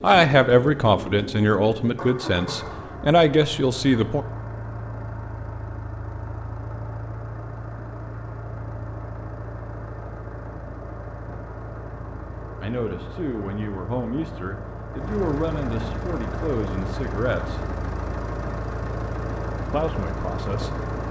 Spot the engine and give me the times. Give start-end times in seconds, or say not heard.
0.0-21.0.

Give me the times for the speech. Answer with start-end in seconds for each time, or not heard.
0.0-4.2, 12.6-17.6, 19.7-21.0.